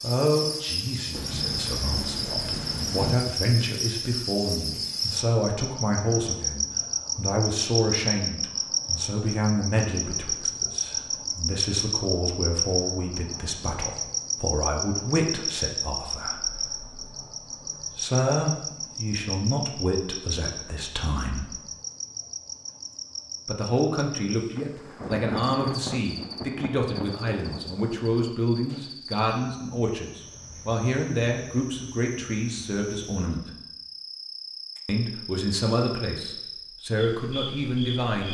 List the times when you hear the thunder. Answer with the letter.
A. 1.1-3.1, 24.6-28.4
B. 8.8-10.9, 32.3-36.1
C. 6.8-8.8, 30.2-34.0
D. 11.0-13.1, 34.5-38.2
A.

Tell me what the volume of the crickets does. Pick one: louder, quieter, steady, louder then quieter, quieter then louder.
quieter.